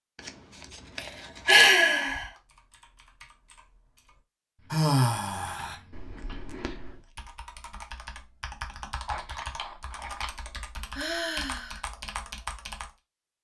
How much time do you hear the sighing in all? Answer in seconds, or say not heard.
3 s.